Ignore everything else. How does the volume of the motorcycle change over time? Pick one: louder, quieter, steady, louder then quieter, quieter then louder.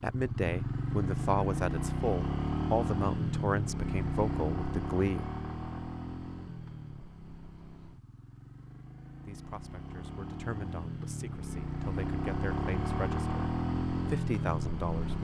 quieter then louder.